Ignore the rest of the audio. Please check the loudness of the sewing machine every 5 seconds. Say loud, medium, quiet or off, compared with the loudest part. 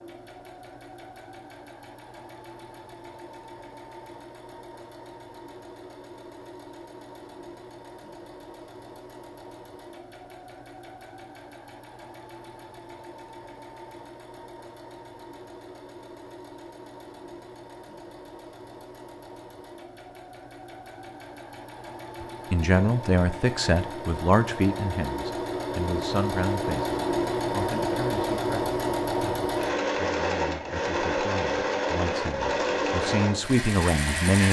quiet, quiet, quiet, quiet, medium, loud, loud.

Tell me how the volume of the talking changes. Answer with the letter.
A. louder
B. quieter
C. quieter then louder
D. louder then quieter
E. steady
C.